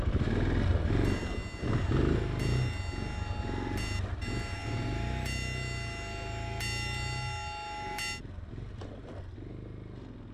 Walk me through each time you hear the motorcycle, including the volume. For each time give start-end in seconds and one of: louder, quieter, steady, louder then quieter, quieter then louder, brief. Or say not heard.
0.0-10.3 quieter.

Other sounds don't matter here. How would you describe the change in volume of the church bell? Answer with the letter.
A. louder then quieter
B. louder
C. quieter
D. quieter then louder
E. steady
B.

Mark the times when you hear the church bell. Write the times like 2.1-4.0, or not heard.
0.8-8.2.